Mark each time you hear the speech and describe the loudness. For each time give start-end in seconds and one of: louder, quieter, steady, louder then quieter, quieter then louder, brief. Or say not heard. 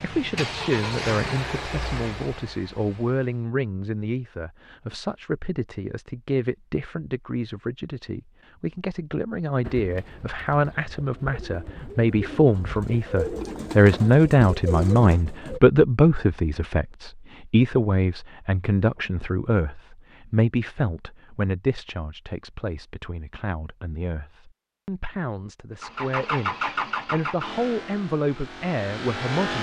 0.0-29.5 louder then quieter.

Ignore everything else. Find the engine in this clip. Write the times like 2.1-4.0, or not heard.
0.0-3.5, 25.8-29.5.